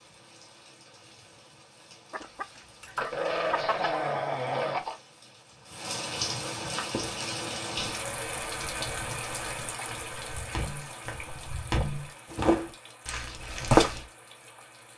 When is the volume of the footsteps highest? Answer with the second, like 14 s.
14 s.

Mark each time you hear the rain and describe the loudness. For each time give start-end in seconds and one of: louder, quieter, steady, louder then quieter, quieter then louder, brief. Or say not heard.
0.0-14.9 louder then quieter.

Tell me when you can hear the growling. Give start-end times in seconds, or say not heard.
3.0-5.0.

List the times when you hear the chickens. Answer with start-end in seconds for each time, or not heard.
2.1-4.0.